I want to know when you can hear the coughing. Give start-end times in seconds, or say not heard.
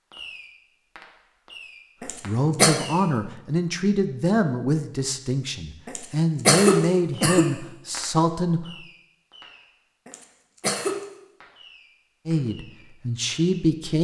2.0-2.8, 5.8-7.5, 10.1-11.0.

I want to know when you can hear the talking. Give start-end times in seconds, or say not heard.
2.2-8.7, 12.2-13.9.